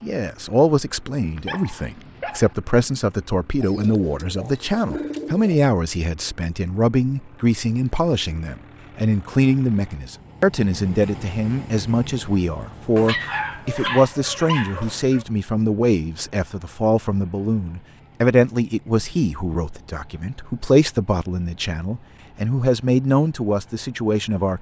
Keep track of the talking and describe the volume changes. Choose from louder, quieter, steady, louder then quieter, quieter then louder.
steady.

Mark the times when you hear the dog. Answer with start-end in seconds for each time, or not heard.
1.4-2.5, 12.9-15.2.